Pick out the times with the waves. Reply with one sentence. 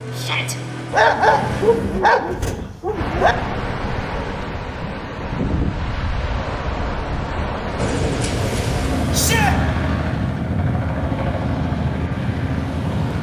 You can hear the waves from 2.9 to 13.1 s.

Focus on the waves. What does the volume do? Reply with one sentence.
The loudness of the waves stays about the same.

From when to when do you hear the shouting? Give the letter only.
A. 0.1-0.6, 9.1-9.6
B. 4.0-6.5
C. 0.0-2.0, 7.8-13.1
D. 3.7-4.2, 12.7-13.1
A.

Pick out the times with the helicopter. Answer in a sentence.
You can hear the helicopter from 0.0 to 2.0 s and from 7.8 to 13.1 s.